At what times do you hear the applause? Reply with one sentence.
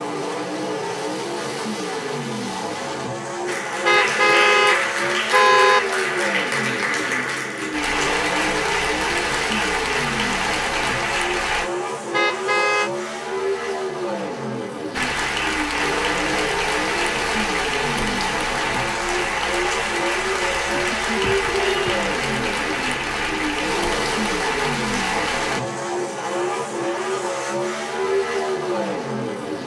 The applause can be heard from 3.5 to 11.7 s and from 14.9 to 25.6 s.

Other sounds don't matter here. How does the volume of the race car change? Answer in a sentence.
The loudness of the race car stays about the same.